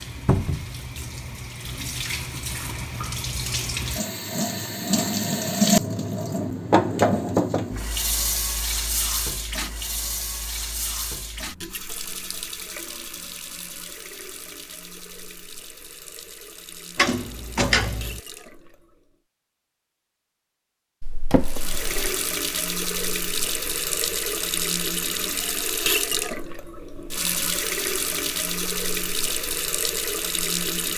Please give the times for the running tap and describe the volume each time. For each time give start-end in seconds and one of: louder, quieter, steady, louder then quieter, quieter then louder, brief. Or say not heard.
0.0-19.1 louder then quieter
21.4-30.9 steady.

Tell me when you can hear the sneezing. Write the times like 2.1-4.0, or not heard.
not heard.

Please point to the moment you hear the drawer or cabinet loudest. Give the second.
18 s.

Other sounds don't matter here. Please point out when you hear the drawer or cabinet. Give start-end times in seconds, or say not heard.
0.2-0.7, 16.9-18.2, 21.0-22.2.